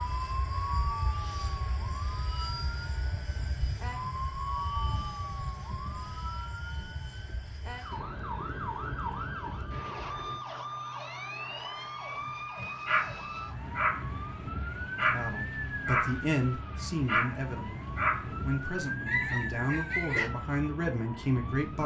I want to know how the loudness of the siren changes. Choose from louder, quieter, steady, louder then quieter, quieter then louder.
steady.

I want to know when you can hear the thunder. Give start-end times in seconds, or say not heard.
7.9-10.4.